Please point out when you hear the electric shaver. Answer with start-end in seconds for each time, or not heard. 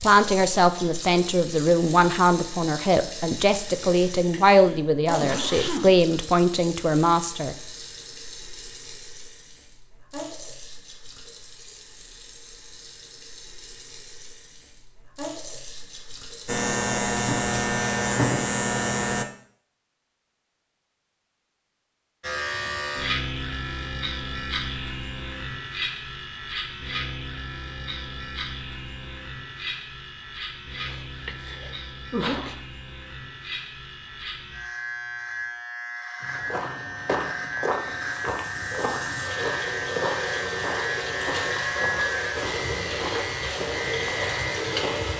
16.4-19.2, 22.2-45.1.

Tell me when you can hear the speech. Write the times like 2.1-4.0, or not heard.
0.0-7.5.